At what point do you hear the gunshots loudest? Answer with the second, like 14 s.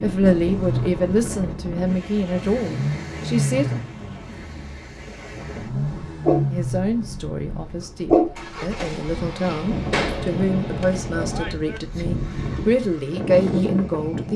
10 s.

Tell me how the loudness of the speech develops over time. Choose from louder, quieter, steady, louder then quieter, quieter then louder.
quieter then louder.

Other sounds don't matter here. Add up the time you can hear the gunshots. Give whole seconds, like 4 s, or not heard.
2 s.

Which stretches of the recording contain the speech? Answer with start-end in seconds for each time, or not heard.
0.0-3.8, 6.5-14.3.